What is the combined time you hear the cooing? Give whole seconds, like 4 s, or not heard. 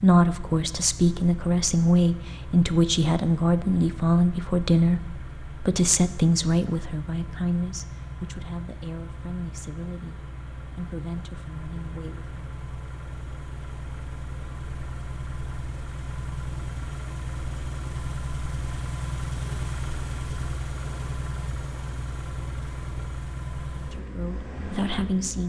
not heard.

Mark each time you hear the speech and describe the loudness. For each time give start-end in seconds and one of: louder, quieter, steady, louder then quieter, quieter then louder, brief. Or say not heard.
0.0-12.4 quieter
23.7-25.4 brief.